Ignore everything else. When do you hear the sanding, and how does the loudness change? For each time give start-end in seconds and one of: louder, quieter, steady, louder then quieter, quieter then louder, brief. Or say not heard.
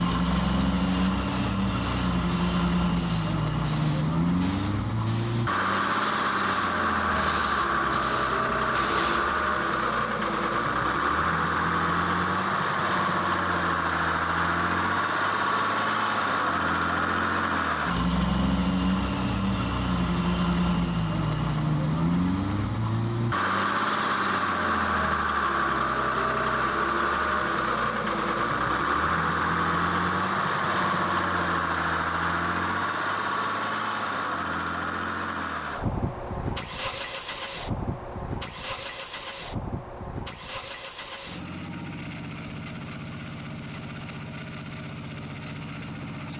not heard.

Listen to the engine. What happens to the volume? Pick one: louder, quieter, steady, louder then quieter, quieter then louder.
quieter.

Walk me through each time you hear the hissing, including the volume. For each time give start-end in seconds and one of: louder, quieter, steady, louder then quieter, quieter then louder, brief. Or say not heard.
0.2-9.3 louder.